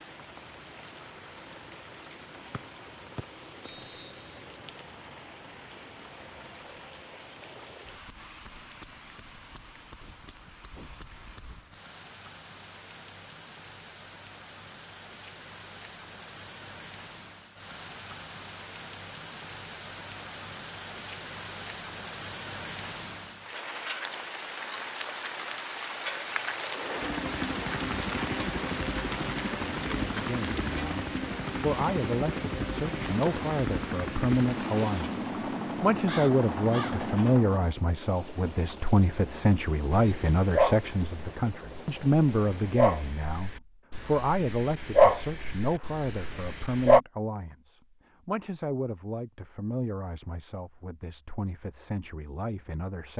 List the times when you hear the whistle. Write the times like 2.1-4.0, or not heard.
2.5-4.2.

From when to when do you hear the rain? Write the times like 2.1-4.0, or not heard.
0.0-43.2.